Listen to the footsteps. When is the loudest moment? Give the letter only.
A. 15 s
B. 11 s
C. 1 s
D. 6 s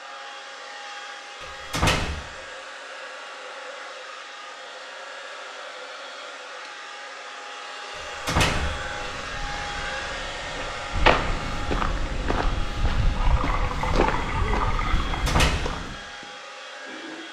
B.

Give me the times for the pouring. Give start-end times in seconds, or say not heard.
13.2-15.2.